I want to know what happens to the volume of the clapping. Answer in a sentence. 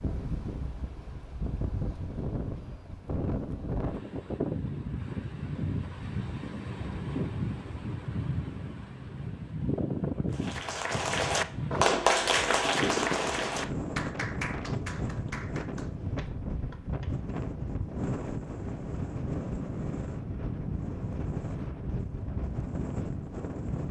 The volume of the clapping goes down.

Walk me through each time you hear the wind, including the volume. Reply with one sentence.
The wind can be heard from 0.0 to 23.8 s, at a steady volume.